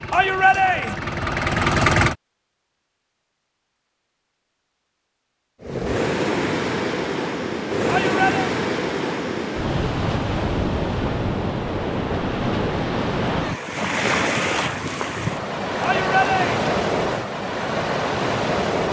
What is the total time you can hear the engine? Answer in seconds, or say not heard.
2 s.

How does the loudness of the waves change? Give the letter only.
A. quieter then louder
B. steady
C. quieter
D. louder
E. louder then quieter
B.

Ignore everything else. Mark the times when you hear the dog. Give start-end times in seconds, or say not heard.
not heard.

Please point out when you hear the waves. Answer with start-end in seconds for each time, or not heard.
5.6-18.8.